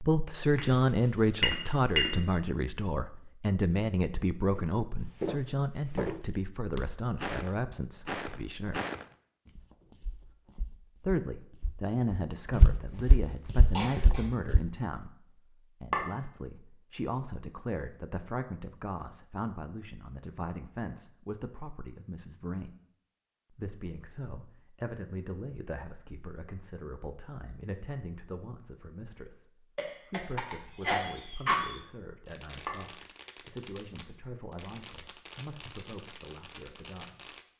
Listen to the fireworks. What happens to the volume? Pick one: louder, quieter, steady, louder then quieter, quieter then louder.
steady.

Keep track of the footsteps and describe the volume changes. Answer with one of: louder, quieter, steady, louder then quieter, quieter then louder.
quieter then louder.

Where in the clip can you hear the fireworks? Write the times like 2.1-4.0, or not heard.
32.2-37.5.